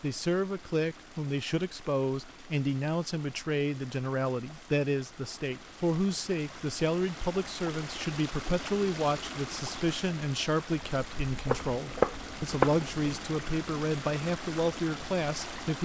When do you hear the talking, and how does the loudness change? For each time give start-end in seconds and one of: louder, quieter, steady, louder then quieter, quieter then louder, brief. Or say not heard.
0.0-15.7 steady.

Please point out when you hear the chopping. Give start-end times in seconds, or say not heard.
11.4-12.9.